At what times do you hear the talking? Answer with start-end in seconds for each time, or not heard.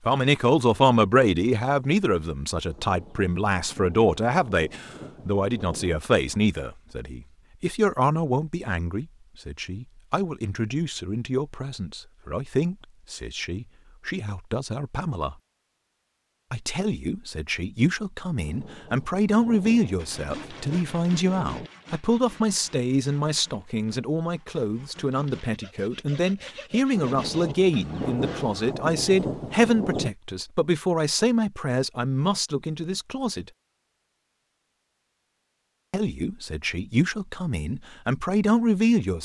0.1-15.3, 16.5-33.5, 35.9-39.2.